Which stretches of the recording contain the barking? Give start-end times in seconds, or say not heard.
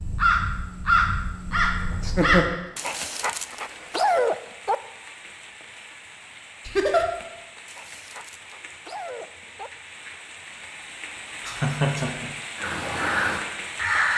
2.8-4.8, 7.7-9.7.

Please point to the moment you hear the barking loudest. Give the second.
4 s.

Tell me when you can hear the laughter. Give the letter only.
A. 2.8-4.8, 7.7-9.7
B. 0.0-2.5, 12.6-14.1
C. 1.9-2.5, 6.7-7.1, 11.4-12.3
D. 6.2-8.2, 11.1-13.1
C.